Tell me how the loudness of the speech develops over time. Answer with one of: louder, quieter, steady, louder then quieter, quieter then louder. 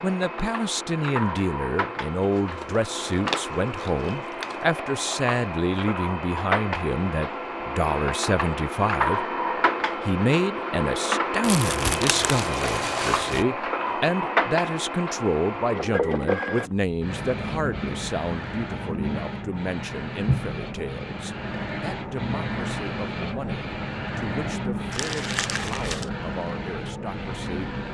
quieter.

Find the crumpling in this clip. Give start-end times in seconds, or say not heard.
2.3-4.7, 11.4-13.4, 24.9-26.1.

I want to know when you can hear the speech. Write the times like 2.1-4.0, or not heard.
0.0-9.2, 10.0-27.7.